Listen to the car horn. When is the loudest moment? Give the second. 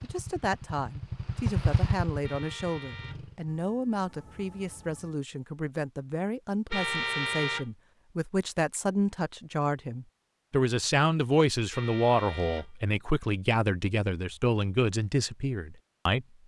7 s.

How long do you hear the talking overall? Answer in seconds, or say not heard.
16 s.